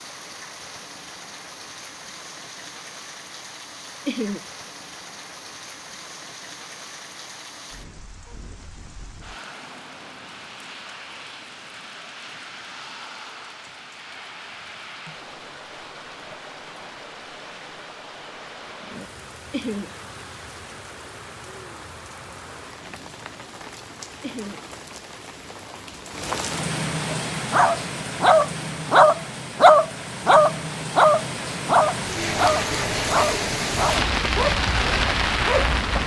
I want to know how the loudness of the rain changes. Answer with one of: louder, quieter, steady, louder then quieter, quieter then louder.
louder.